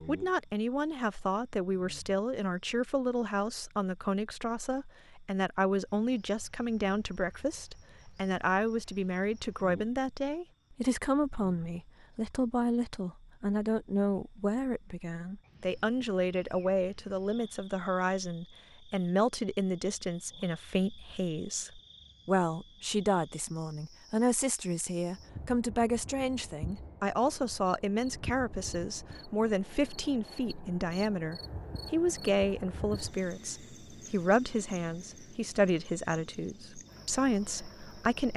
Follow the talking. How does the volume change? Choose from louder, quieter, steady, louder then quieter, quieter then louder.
steady.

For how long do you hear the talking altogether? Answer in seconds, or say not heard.
38 s.